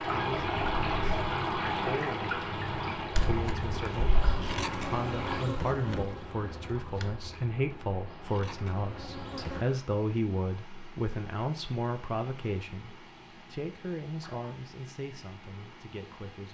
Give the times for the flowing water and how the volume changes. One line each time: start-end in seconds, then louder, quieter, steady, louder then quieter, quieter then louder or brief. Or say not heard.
0.0-16.4 quieter.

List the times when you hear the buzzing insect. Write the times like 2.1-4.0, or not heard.
3.1-9.7.